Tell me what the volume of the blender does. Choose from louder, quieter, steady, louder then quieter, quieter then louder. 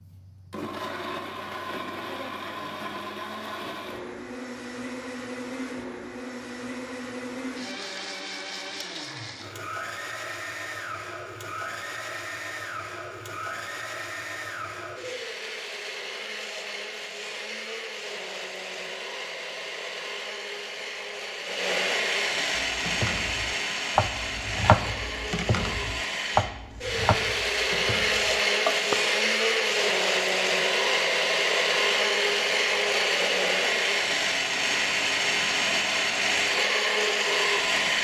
louder.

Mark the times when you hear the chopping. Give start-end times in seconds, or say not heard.
22.6-28.9.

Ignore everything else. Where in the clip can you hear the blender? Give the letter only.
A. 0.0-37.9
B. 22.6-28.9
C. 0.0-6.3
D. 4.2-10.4
A.